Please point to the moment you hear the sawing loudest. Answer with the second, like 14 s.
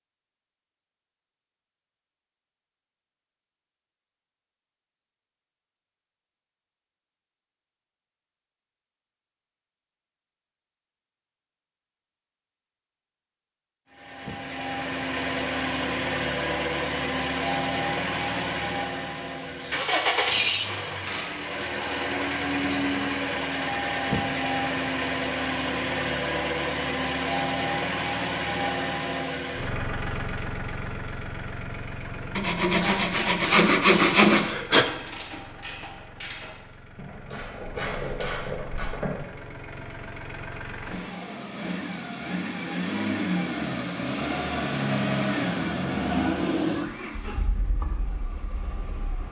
34 s.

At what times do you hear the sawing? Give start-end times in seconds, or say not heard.
32.4-34.9.